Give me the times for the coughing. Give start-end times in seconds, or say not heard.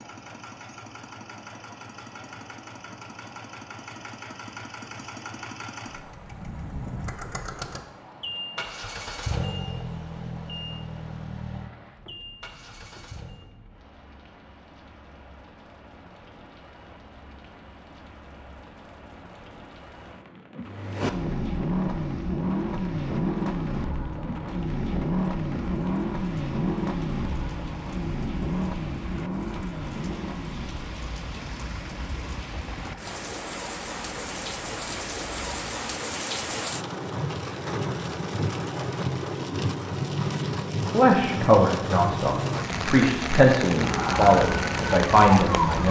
not heard.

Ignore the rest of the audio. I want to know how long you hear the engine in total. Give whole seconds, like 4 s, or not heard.
29 s.